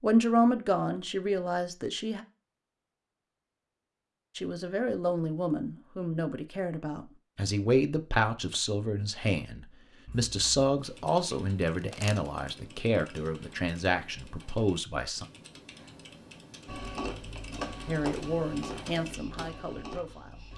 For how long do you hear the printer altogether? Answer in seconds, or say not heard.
4 s.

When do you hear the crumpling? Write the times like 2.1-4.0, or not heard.
11.8-12.6.